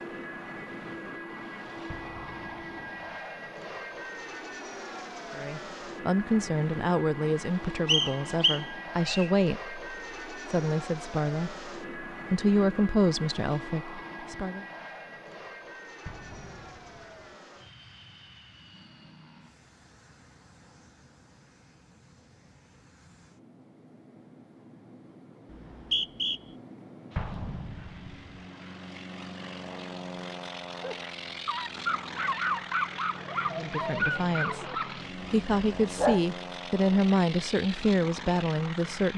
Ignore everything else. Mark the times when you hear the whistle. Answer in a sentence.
The whistle can be heard from 7.8 to 9.3 s and from 25.5 to 26.4 s.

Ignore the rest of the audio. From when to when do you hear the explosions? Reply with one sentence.
You can hear the explosions from 1.9 to 3.0 s, from 16.1 to 17.4 s and from 27.1 to 28.4 s.